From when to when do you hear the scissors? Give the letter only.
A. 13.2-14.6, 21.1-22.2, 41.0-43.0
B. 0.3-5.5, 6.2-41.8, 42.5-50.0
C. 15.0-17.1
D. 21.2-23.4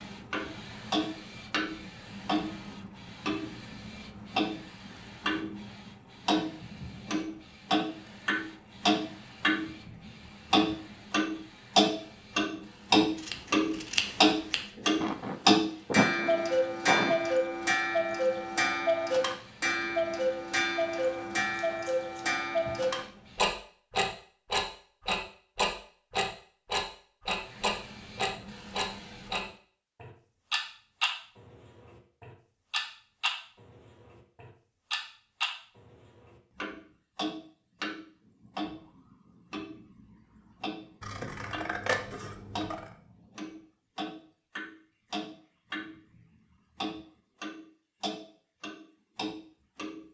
A.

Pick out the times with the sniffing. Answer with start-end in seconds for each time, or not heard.
15.0-17.1.